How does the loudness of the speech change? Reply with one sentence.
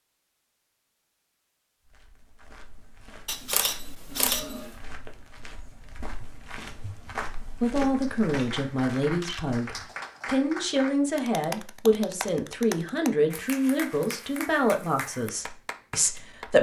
The volume of the speech stays about the same.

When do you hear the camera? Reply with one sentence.
You can hear the camera from 3.2 to 4.7 s and from 9.2 to 9.9 s.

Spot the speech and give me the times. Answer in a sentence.
You can hear the speech from 7.6 to 16.5 s.